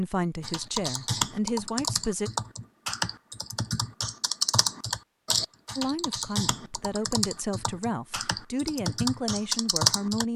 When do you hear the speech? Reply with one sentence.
The speech can be heard from 0.0 to 2.3 s and from 5.8 to 10.3 s.